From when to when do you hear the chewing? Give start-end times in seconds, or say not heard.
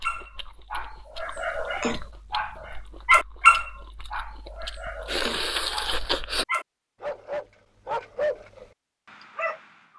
0.0-6.5.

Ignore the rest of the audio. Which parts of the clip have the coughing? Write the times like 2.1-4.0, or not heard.
not heard.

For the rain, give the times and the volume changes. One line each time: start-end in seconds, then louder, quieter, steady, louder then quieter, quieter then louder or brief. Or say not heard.
not heard.